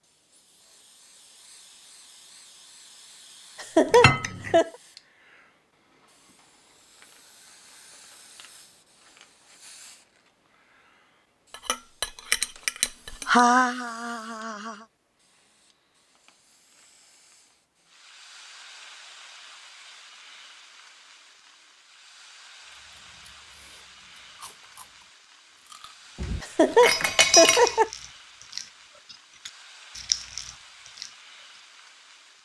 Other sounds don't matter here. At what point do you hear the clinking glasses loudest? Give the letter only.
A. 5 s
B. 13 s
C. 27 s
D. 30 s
C.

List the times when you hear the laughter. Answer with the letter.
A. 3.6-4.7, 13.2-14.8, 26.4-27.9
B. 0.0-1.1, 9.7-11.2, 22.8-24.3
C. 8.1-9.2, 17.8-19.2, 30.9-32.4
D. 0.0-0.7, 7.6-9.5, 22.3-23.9
A.